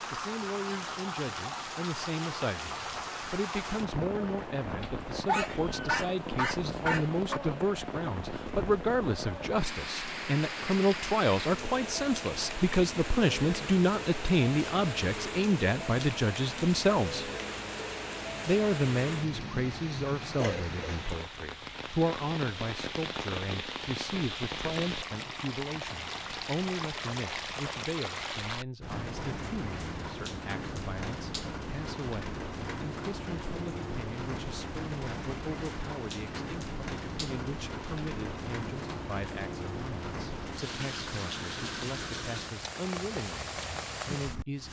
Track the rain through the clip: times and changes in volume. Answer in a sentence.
The rain can be heard from 0.0 to 44.6 s, at a steady volume.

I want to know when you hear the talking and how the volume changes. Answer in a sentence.
The talking can be heard from 0.1 to 17.3 s, getting louder; and from 18.4 to 44.6 s, getting quieter.